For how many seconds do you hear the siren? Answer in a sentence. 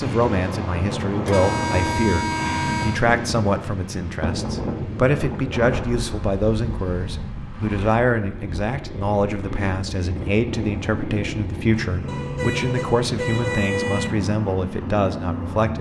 The siren can't be heard in this clip.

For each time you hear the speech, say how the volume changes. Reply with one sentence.
The speech can be heard from 0.0 to 15.7 s, at a steady volume.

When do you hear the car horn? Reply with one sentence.
You can hear the car horn from 1.2 to 3.0 s, from 6.2 to 7.3 s and from 12.1 to 14.1 s.